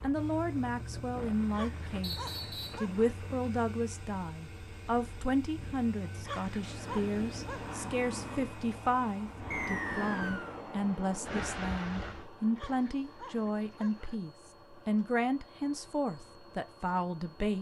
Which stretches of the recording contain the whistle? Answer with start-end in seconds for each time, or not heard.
2.0-2.8, 9.5-10.6.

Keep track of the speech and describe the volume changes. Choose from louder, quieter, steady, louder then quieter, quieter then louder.
steady.